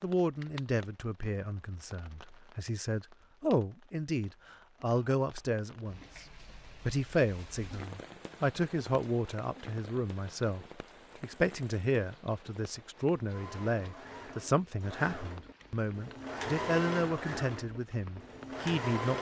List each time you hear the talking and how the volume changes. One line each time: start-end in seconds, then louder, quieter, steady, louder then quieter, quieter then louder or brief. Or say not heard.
0.0-19.1 steady.